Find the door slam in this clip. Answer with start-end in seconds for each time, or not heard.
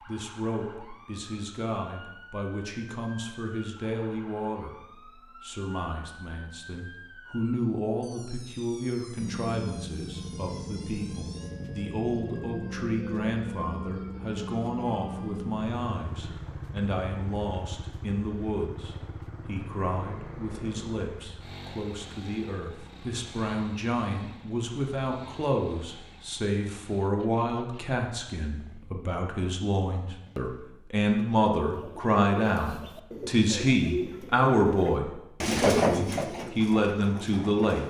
not heard.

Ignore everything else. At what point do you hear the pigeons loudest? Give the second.
36 s.